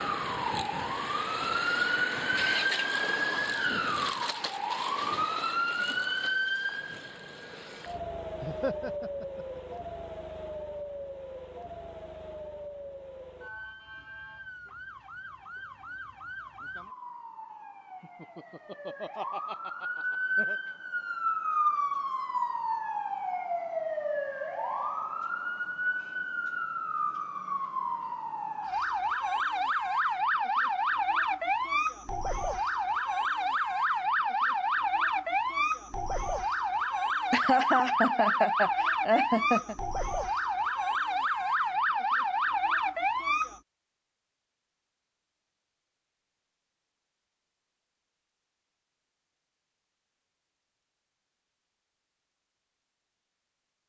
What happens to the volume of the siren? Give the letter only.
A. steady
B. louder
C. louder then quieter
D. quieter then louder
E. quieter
D.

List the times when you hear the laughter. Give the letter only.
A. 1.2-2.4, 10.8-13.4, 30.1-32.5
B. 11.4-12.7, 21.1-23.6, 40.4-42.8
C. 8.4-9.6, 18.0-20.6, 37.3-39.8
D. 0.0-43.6
C.